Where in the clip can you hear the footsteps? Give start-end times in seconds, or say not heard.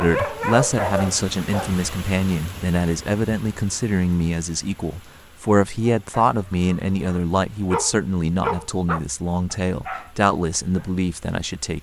not heard.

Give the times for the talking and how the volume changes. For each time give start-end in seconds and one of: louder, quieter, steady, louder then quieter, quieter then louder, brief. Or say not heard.
0.0-11.7 steady.